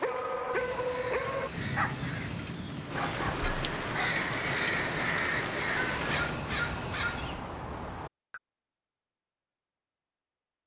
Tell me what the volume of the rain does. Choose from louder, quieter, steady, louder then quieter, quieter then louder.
louder.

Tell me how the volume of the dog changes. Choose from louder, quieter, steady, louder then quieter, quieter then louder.
quieter.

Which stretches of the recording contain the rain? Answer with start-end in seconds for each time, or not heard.
0.0-6.4.